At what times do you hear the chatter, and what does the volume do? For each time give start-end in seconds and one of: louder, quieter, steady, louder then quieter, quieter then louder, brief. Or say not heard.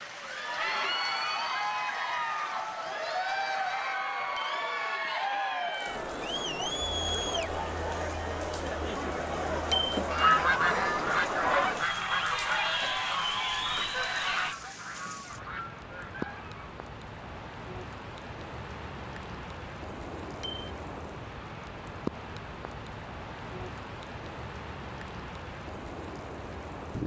0.1-14.6 steady.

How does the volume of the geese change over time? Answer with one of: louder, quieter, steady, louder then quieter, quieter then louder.
quieter.